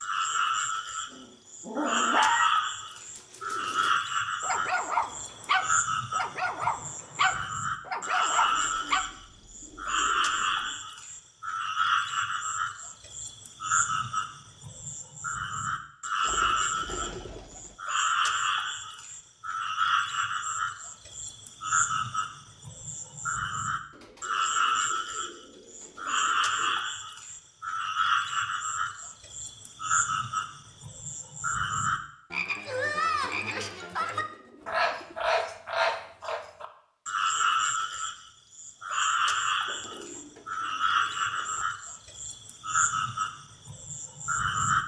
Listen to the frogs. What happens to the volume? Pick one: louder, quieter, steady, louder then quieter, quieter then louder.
steady.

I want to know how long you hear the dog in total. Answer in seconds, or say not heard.
8 s.